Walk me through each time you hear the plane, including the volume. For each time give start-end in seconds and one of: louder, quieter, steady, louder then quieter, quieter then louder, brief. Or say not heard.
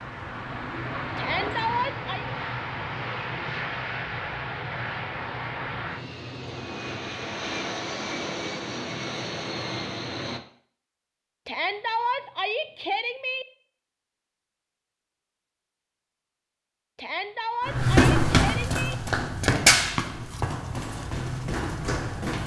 0.0-10.4 steady.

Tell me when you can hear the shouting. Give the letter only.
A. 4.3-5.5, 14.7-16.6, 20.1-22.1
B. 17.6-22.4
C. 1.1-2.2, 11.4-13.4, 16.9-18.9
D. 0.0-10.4
C.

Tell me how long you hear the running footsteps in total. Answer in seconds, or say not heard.
5 s.